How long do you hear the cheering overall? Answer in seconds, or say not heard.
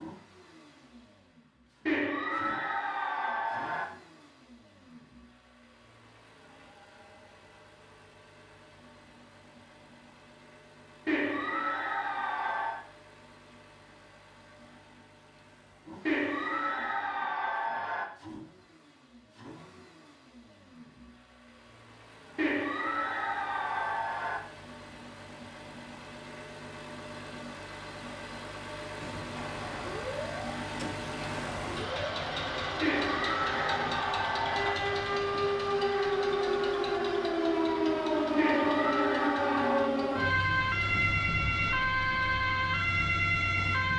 11 s.